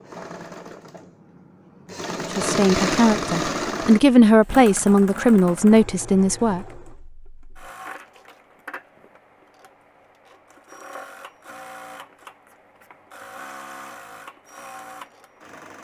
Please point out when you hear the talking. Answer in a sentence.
The talking can be heard from 2.2 to 6.6 s.